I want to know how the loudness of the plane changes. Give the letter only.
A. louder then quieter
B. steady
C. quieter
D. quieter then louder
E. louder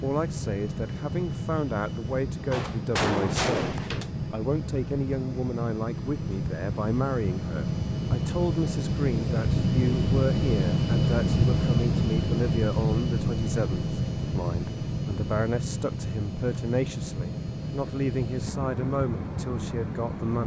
A.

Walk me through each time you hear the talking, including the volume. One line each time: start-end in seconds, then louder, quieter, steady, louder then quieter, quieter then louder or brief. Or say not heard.
0.0-20.4 steady.